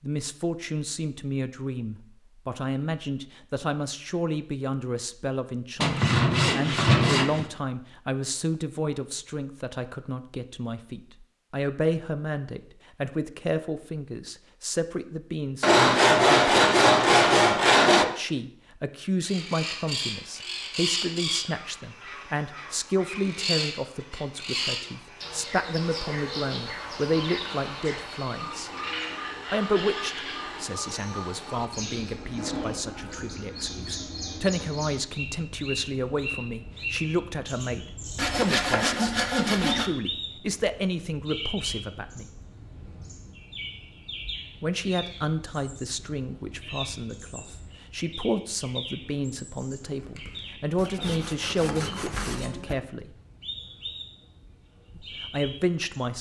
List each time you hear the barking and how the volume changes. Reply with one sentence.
The barking can't be heard in this clip.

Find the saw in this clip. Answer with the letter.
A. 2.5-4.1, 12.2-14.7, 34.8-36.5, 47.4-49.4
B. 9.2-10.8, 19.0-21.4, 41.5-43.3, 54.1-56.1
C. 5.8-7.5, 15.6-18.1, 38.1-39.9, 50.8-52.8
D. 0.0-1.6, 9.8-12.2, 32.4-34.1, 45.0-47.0
C.